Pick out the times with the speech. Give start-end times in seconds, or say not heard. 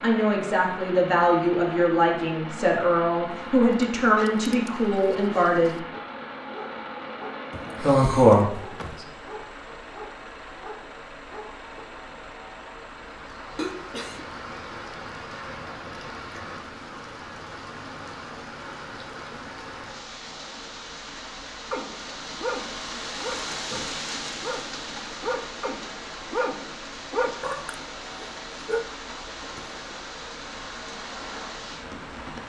0.0-5.8, 7.8-9.1.